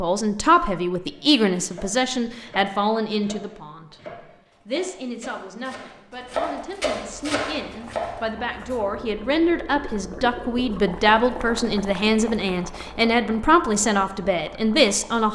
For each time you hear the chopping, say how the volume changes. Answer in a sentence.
You can hear the chopping from 1.1 to 8.2 s, getting louder.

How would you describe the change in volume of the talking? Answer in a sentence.
The volume of the talking goes down, then up.